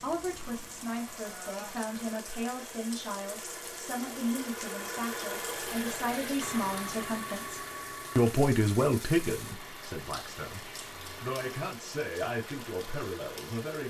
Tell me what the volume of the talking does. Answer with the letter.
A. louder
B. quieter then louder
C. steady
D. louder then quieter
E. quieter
D.